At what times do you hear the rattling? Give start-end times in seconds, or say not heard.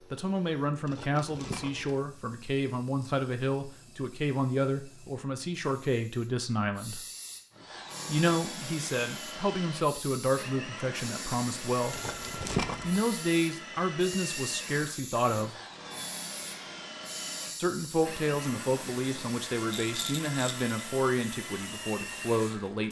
0.8-2.0, 11.9-13.1, 19.7-20.6.